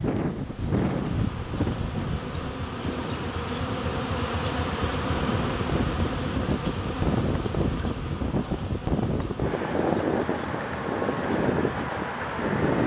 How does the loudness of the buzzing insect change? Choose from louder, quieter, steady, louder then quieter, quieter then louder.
louder then quieter.